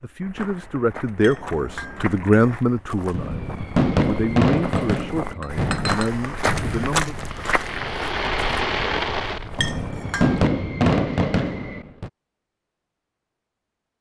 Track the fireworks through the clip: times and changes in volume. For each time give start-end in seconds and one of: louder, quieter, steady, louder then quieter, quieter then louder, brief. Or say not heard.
3.1-12.1 quieter then louder.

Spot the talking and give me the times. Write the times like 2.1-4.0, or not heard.
0.0-7.2.